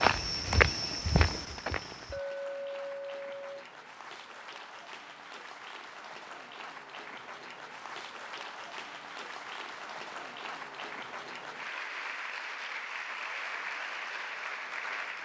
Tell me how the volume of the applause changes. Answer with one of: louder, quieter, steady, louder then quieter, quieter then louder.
louder.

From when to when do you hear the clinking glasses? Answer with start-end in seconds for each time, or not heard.
2.1-3.6.